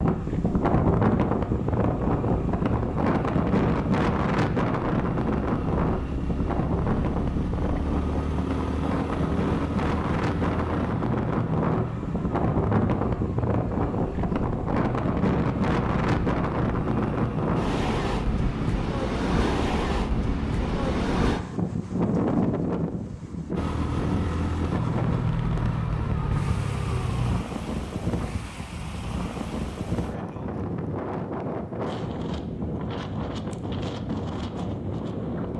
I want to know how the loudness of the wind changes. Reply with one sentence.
The volume of the wind goes down.